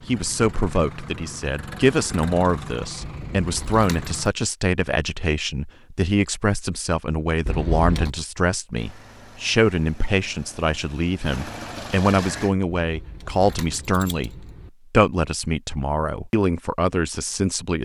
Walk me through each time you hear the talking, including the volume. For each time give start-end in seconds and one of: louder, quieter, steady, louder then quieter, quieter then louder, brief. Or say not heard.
0.0-17.8 steady.